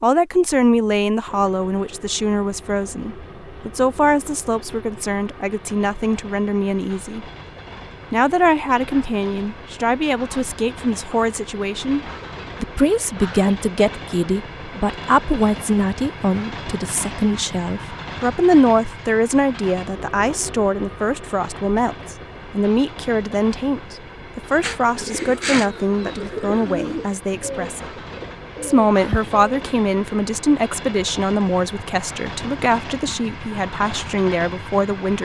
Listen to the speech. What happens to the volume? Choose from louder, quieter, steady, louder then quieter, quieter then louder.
steady.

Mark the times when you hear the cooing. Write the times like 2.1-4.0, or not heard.
24.6-29.6.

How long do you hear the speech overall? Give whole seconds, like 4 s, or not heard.
34 s.